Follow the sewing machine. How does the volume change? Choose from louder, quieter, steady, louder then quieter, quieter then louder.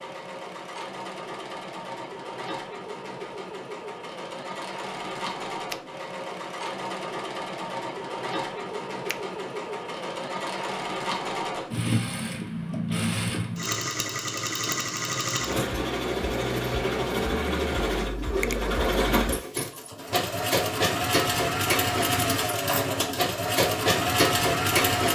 louder.